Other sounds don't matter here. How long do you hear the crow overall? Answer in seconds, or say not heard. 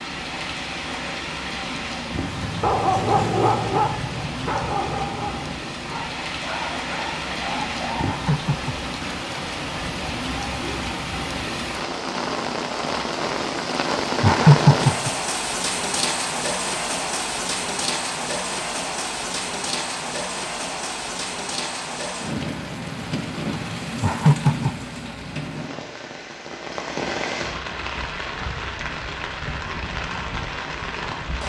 not heard.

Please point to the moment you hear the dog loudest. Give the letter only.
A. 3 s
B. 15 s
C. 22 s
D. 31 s
A.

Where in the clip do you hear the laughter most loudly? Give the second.
15 s.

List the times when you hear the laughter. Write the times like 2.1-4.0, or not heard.
8.1-8.8, 14.2-15.1, 24.0-24.8.